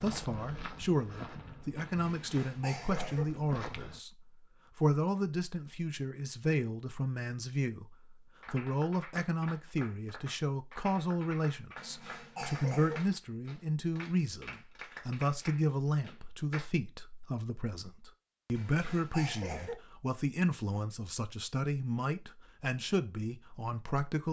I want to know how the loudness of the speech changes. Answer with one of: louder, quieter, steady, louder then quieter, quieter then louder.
steady.